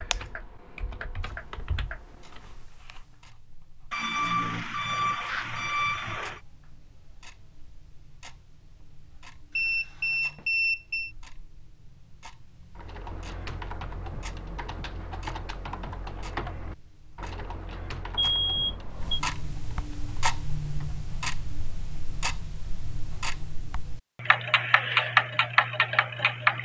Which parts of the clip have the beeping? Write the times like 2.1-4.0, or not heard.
3.9-6.4, 9.6-11.1, 18.1-19.2.